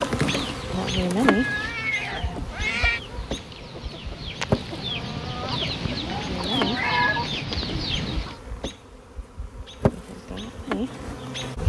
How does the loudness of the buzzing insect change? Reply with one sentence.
The volume of the buzzing insect goes down, then up.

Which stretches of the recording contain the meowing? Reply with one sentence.
The meowing can be heard from 1.2 to 3.0 s and from 6.7 to 7.2 s.